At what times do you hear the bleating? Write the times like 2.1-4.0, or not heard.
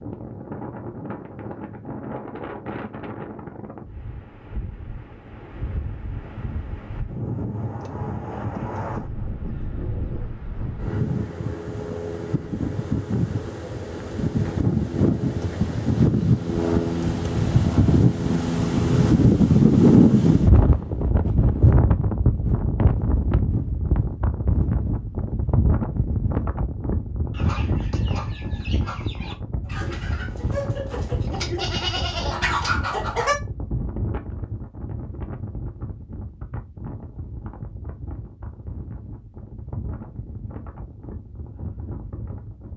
31.2-32.8.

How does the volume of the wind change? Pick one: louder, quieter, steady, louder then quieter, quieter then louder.
louder then quieter.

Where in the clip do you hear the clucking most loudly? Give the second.
33 s.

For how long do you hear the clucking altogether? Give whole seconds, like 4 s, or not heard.
6 s.